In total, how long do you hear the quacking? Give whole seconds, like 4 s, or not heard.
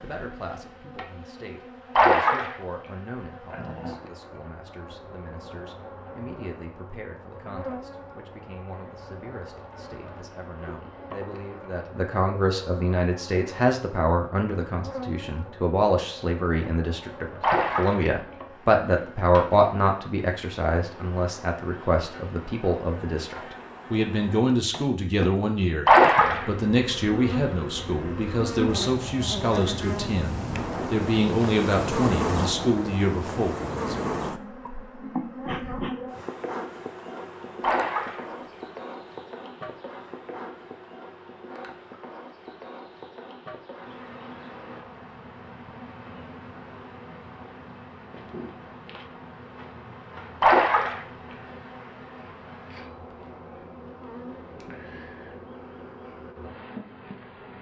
not heard.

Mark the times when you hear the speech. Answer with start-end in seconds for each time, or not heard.
0.0-25.9, 26.4-34.0.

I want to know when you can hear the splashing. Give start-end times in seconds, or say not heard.
1.9-2.5, 17.4-18.1, 25.9-26.5, 37.6-38.2, 50.4-51.0.